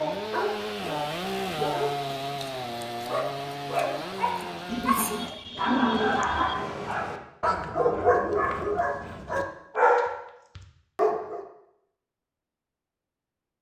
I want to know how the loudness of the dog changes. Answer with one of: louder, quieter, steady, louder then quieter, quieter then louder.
louder.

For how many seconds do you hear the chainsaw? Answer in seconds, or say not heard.
5 s.